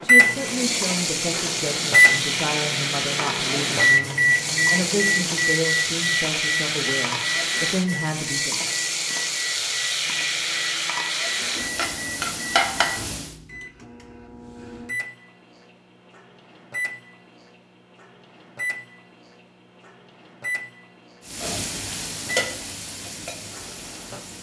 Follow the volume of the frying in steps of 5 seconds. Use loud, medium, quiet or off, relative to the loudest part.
loud, loud, loud, off, medium.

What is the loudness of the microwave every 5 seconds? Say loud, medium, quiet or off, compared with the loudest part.
loud, medium, quiet, quiet, quiet.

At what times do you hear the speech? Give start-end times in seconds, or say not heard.
0.0-8.7.